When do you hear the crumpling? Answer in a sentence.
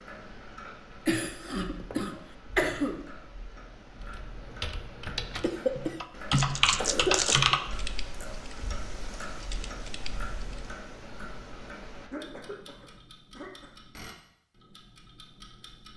You can hear the crumpling from 6.3 to 7.4 s.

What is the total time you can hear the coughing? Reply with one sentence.
The coughing can be heard for 6 seconds in total.